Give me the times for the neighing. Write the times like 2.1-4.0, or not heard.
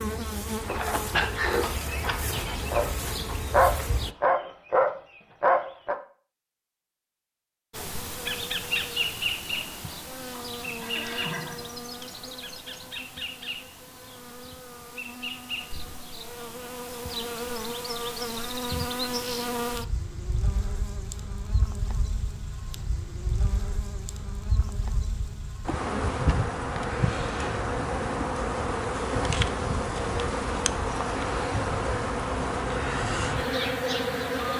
10.6-12.2.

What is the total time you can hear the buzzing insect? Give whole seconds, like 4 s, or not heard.
31 s.